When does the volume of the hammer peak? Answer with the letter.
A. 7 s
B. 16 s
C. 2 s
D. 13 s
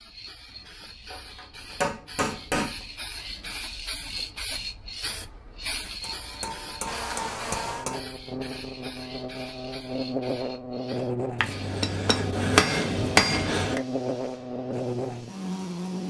D.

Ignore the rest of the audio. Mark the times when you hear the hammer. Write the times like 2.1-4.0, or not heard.
1.1-2.9, 6.0-8.0, 11.4-13.8.